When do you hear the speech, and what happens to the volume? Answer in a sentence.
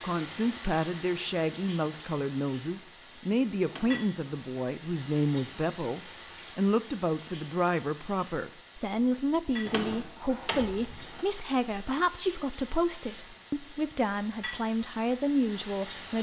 You can hear the speech from 0.0 to 16.1 s, at a steady volume.